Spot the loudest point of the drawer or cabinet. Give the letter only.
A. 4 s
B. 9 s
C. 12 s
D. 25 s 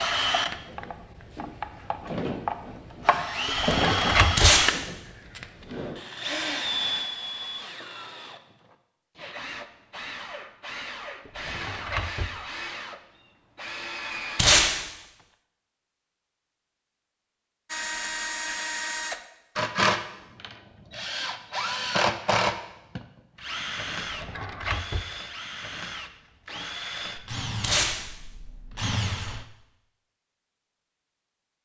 A.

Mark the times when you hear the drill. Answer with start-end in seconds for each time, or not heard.
0.0-15.2, 17.7-29.4.